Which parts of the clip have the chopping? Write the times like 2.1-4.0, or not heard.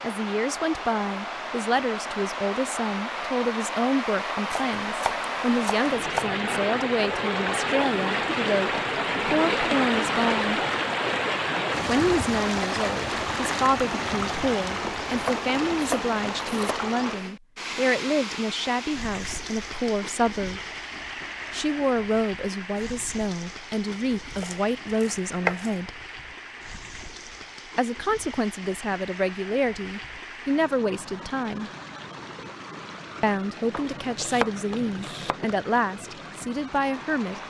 4.5-6.3, 15.1-16.8, 24.4-25.7, 33.7-35.4.